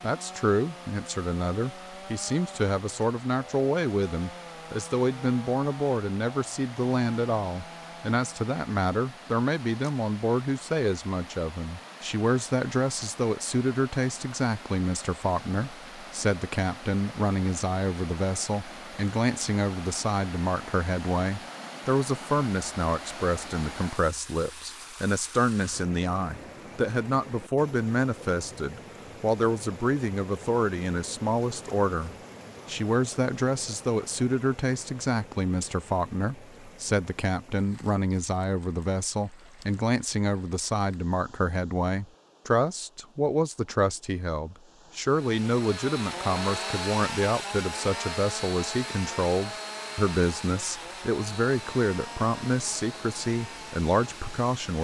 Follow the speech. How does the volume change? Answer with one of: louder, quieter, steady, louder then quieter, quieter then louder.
steady.